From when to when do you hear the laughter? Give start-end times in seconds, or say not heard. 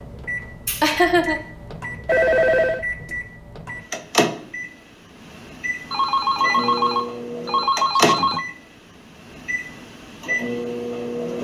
0.7-1.4.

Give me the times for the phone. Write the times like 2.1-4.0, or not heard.
2.0-2.9, 5.9-8.4.